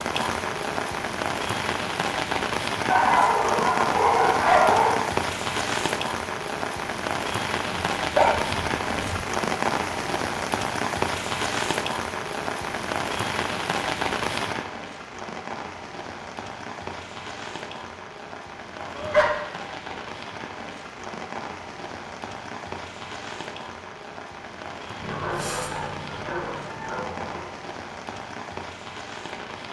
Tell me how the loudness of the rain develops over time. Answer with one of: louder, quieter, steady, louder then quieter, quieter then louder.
quieter.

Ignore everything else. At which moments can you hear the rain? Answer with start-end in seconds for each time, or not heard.
0.0-29.6.